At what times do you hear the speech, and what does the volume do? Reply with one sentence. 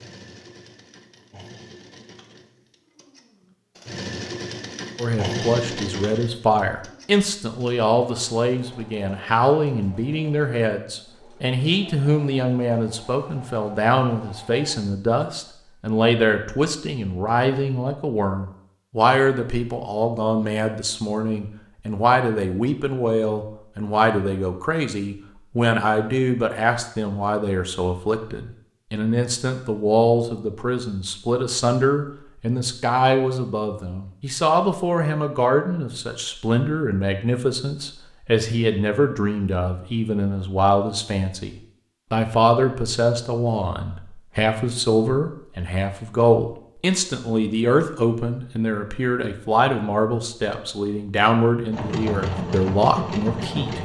The speech can be heard from 5.0 to 53.8 s, at a steady volume.